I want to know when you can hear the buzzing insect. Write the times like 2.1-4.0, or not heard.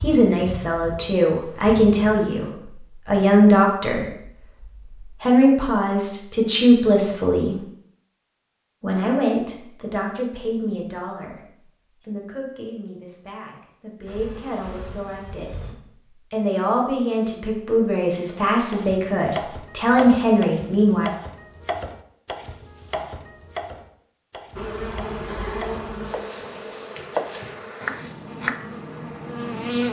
0.0-2.5, 14.1-15.8, 24.6-29.8.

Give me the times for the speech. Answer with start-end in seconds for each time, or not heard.
0.0-4.1, 4.8-7.5, 8.8-15.6, 16.3-21.1.